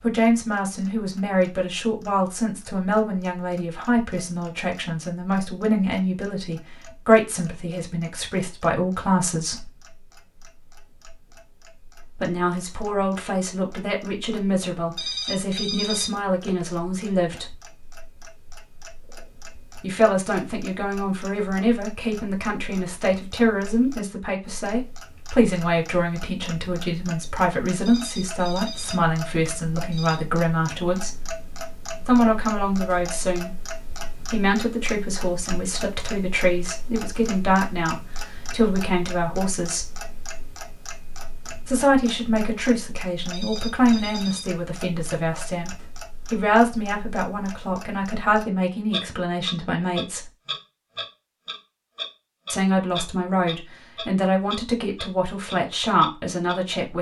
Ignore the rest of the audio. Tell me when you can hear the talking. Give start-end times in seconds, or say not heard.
0.0-9.7, 12.2-17.6, 19.8-31.2, 32.0-39.9, 41.6-50.3, 52.5-56.9.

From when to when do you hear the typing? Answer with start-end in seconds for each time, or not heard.
not heard.